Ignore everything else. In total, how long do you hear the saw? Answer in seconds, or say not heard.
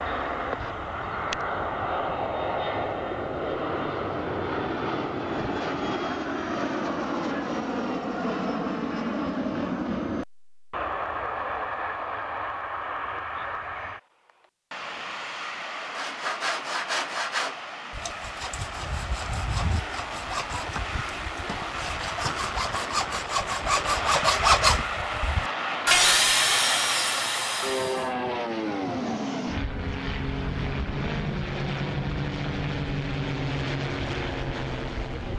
12 s.